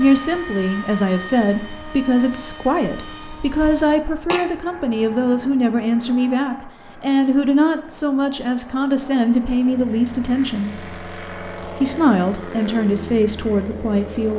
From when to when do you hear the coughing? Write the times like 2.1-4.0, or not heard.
3.6-4.5.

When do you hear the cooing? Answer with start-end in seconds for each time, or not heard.
not heard.